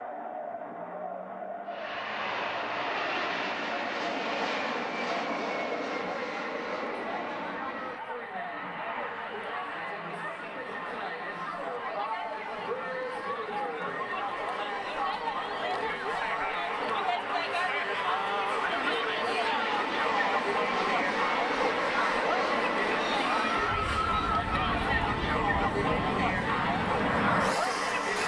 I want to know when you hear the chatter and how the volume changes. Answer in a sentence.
You can hear the chatter from 0.0 to 28.2 s, getting louder.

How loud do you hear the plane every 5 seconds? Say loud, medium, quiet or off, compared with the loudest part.
loud, loud, quiet, medium, loud, loud.